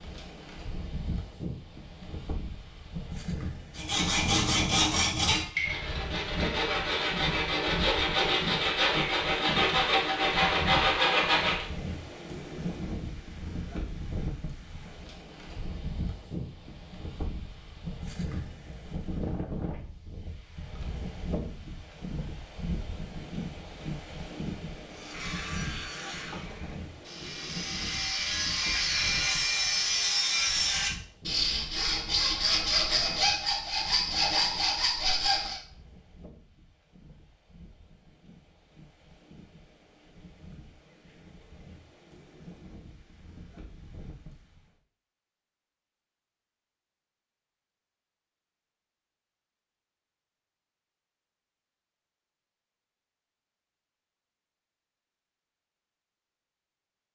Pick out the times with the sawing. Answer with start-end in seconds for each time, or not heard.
3.8-11.7, 24.9-35.6.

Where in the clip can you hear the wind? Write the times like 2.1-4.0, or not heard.
0.0-44.7.